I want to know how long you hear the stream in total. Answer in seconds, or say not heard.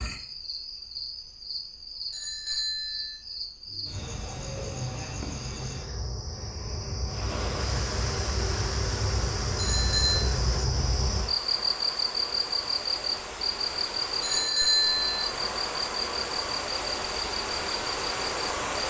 12 s.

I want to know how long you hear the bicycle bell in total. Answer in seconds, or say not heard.
3 s.